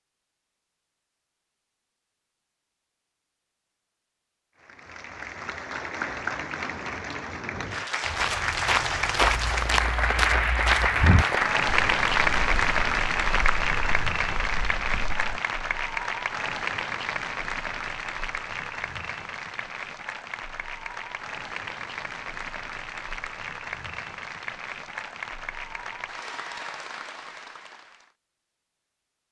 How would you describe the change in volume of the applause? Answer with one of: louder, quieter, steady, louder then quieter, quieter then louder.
louder then quieter.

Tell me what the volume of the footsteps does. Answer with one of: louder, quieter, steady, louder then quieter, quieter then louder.
quieter.